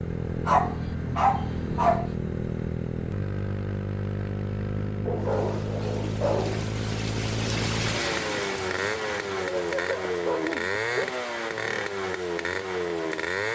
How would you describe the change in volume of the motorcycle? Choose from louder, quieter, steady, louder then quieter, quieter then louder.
steady.